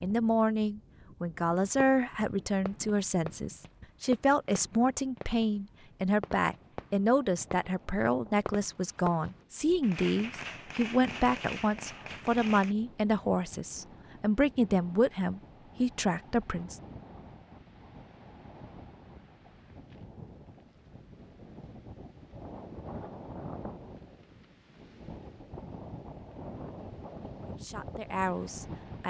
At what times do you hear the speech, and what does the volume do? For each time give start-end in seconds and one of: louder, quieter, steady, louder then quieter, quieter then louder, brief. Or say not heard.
0.0-16.8 steady
27.4-29.0 brief.